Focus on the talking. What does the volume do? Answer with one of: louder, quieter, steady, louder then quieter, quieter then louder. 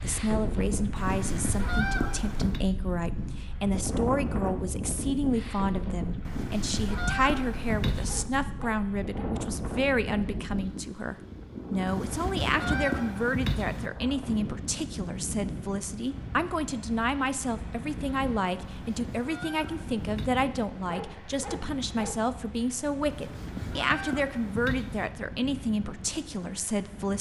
steady.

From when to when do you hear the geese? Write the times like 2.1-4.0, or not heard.
0.9-2.6, 6.2-8.2, 11.8-13.9, 18.6-20.3, 23.1-25.1.